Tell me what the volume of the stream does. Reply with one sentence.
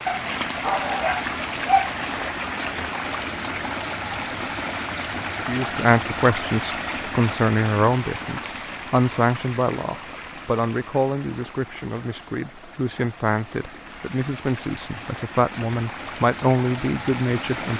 The loudness of the stream goes down, then up.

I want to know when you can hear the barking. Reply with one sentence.
You can hear the barking from 0.1 to 1.9 s.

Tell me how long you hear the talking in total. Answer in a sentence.
You can hear the talking for 12 seconds altogether.